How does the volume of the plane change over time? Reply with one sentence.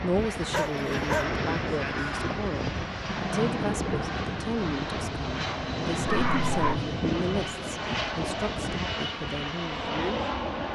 The volume of the plane stays about the same.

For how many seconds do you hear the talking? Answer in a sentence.
The talking can be heard for 10 seconds in total.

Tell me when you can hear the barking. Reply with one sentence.
You can hear the barking from 0.3 to 1.3 s and from 6.0 to 6.8 s.